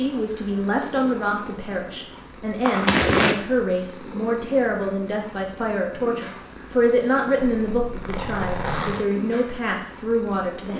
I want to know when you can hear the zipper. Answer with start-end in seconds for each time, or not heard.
2.6-3.4, 7.4-9.1.